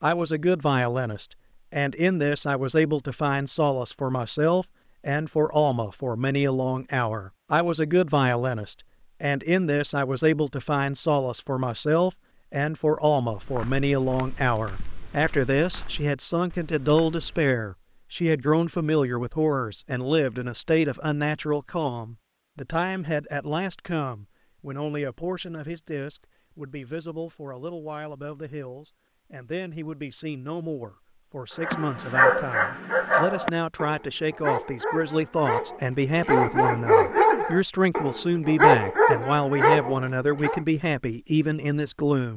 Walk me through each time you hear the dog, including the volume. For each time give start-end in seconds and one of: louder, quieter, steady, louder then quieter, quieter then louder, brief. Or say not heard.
31.6-40.6 quieter then louder.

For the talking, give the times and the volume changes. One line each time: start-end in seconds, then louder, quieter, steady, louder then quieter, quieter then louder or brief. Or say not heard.
0.0-42.3 quieter then louder.